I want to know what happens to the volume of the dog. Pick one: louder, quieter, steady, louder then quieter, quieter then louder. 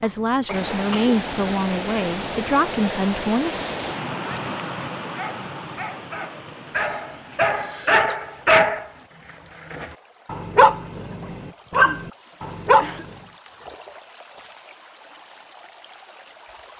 louder.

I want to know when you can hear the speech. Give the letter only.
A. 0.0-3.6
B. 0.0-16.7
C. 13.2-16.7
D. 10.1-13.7
A.